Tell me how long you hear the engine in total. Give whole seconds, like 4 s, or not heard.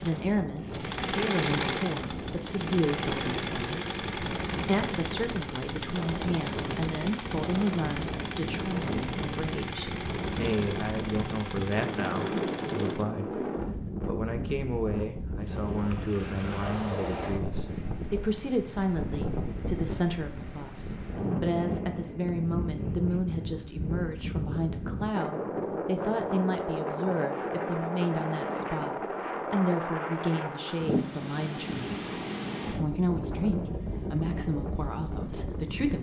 13 s.